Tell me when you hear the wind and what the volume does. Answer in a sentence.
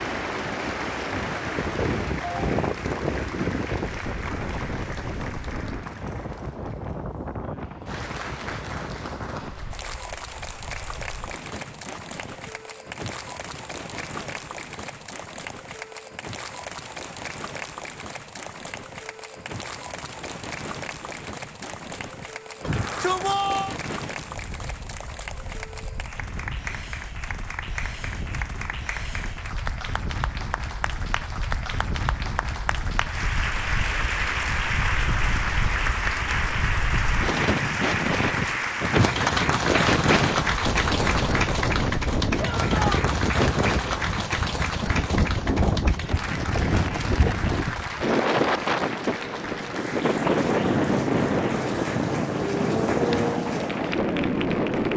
You can hear the wind from 0.0 to 54.9 s, getting quieter then louder.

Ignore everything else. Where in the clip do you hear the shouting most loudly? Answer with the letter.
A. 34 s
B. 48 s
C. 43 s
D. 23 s
D.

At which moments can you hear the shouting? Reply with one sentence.
You can hear the shouting from 22.6 to 23.8 s and from 42.4 to 42.9 s.